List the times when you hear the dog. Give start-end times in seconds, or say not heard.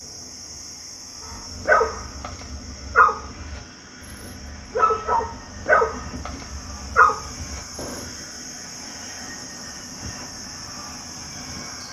1.3-8.1.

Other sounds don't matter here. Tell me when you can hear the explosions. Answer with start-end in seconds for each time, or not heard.
7.8-8.3.